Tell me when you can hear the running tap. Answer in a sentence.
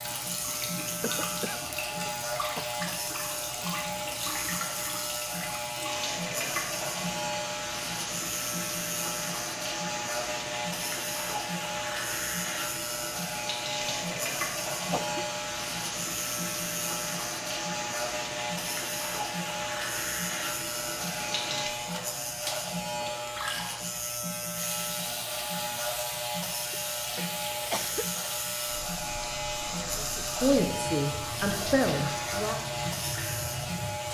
The running tap can be heard from 0.0 to 34.0 s.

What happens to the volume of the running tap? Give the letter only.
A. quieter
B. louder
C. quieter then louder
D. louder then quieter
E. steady
E.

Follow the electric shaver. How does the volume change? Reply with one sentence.
The loudness of the electric shaver stays about the same.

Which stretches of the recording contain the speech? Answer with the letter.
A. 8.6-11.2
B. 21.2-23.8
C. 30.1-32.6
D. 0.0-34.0
C.